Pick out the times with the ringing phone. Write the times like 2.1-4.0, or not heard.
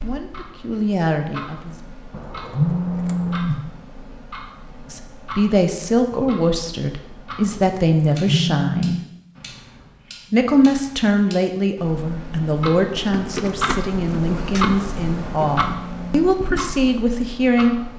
2.5-3.6, 8.2-9.1, 15.6-16.2.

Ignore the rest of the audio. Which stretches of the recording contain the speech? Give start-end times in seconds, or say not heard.
0.0-1.9, 4.9-9.0, 10.3-17.9.